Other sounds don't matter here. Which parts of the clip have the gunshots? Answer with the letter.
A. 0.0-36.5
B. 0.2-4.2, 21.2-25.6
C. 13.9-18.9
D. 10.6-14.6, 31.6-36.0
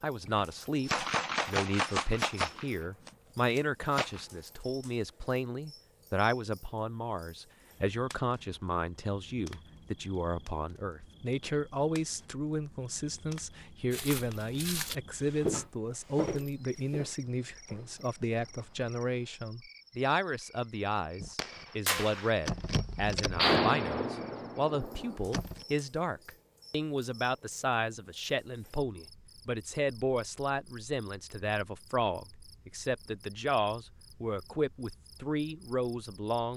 B.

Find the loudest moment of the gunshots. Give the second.
24 s.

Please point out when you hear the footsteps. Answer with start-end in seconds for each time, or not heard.
13.9-18.9.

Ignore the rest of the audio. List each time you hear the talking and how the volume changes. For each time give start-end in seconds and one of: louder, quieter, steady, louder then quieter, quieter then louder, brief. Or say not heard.
0.0-36.5 steady.